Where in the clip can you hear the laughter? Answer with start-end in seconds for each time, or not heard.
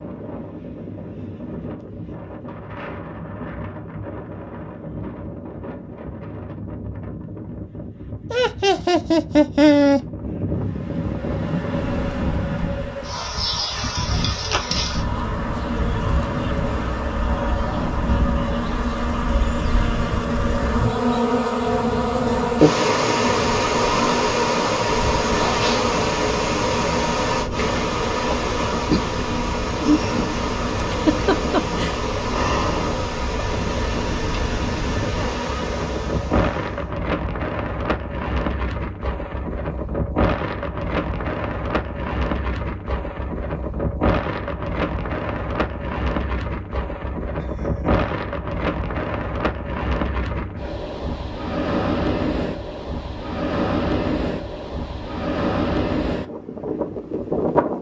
8.3-10.0, 30.9-31.9, 47.4-48.1.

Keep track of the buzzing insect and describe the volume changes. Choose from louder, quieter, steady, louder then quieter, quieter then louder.
louder then quieter.